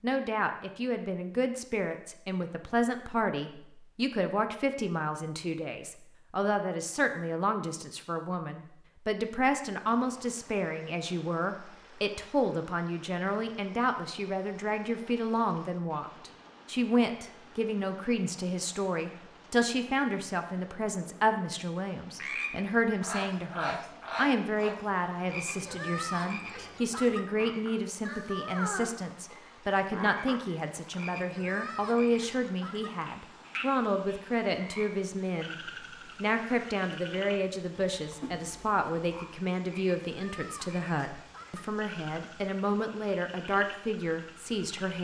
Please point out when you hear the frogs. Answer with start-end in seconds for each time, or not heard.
22.1-45.0.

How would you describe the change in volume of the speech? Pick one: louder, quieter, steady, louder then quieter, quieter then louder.
steady.